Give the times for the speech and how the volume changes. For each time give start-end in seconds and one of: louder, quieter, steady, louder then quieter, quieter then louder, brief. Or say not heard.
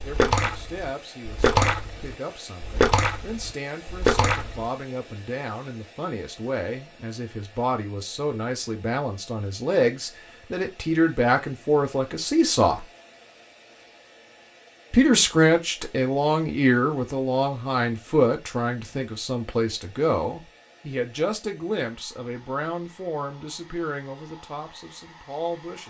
0.0-12.8 louder
14.9-25.8 quieter.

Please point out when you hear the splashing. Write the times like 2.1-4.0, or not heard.
0.0-4.7.